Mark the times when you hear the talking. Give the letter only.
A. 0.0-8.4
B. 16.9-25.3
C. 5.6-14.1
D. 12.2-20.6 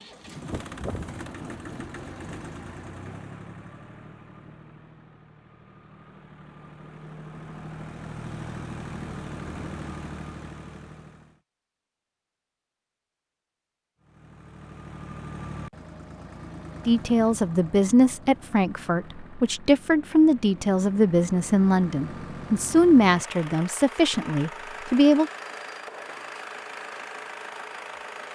B.